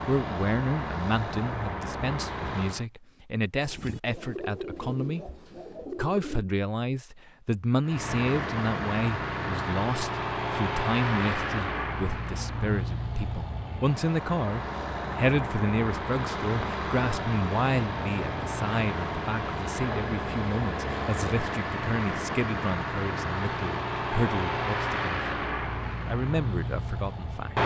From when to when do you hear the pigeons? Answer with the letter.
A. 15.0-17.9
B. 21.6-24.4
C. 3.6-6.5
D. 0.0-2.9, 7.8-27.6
C.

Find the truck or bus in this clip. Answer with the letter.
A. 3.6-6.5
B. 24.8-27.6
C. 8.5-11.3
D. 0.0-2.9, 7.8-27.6
D.